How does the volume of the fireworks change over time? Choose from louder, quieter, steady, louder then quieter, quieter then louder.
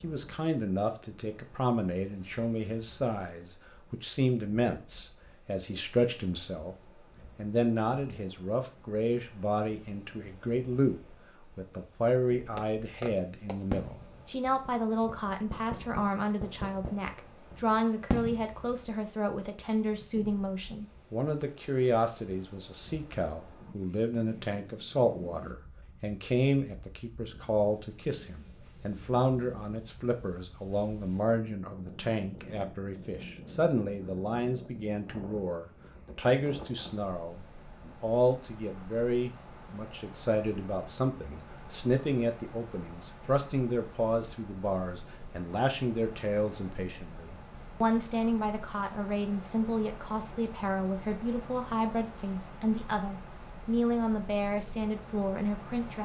quieter then louder.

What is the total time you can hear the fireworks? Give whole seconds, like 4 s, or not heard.
6 s.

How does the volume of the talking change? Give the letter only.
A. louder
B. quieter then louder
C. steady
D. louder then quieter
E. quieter
C.